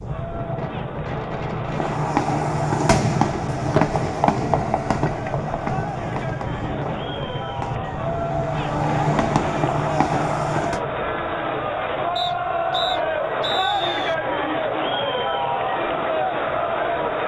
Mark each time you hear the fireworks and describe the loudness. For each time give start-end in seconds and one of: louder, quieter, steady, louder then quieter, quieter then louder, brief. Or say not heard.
1.7-10.8 quieter then louder.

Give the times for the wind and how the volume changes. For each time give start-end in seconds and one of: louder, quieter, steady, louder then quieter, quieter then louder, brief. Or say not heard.
0.0-17.2 quieter.